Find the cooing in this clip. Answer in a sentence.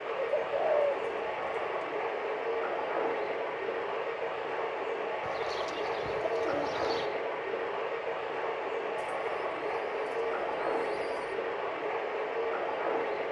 The cooing can be heard from 0.1 to 1.6 s, from 5.2 to 7.1 s and from 8.9 to 11.4 s.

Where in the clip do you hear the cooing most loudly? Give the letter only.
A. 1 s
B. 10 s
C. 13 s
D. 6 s
A.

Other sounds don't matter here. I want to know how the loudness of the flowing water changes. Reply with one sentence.
The volume of the flowing water stays about the same.